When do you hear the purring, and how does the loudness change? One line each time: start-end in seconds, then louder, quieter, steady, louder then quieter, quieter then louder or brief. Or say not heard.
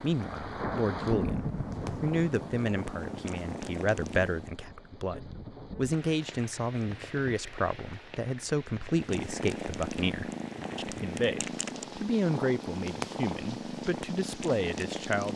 0.0-4.6 louder
8.9-15.3 steady.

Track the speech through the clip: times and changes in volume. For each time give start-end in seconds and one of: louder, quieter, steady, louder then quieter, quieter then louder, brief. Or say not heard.
0.0-15.3 steady.